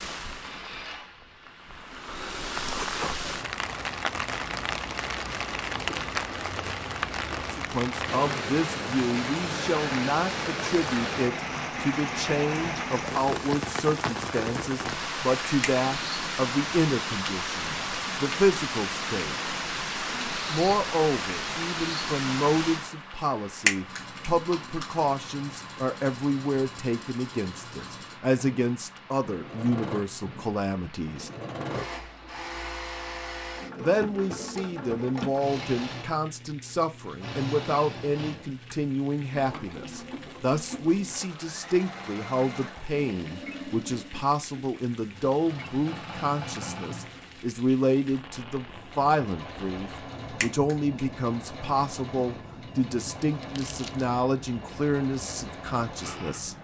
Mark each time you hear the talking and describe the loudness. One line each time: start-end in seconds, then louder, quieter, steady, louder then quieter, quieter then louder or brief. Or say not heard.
7.5-19.5 steady
20.5-31.3 steady
33.8-56.5 steady.